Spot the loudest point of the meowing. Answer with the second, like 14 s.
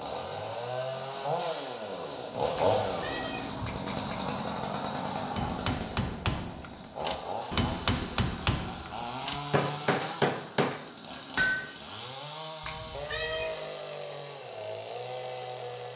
13 s.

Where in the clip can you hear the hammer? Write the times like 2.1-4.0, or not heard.
5.3-11.7.